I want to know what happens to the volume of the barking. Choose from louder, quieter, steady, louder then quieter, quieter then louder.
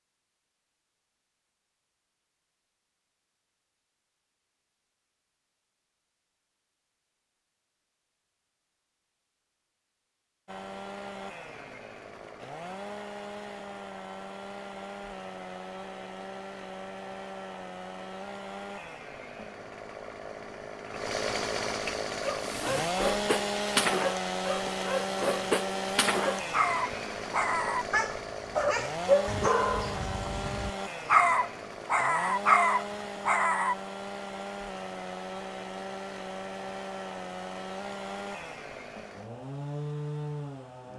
louder.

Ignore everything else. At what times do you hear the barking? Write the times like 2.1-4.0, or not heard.
22.2-33.8.